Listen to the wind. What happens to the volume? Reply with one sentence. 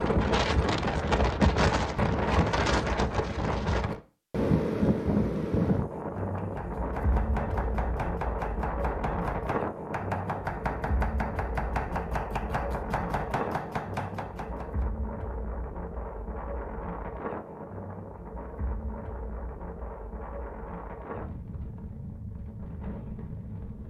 The volume of the wind goes down.